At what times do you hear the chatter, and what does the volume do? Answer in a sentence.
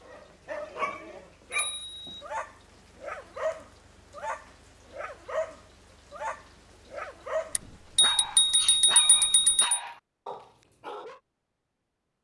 The chatter can't be heard in this clip.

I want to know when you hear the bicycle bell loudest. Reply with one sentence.
The loudest moment of the bicycle bell is at 9 seconds.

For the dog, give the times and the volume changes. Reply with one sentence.
You can hear the dog from 0.0 to 11.2 s, at a steady volume.